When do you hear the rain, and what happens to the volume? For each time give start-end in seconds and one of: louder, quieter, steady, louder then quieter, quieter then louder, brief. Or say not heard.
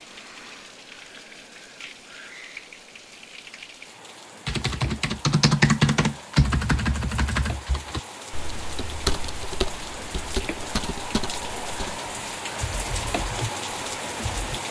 0.0-14.6 louder.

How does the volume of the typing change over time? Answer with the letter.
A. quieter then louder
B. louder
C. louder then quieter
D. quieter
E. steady
D.